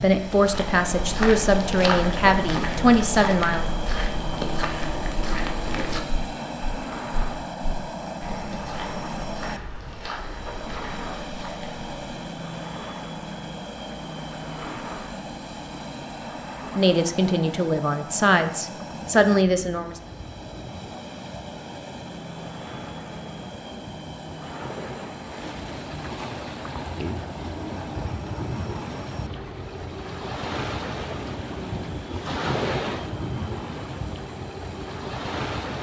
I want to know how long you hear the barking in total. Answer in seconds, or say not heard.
not heard.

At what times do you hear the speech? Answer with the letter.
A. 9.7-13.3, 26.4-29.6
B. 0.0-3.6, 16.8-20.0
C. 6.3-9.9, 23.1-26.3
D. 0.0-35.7
B.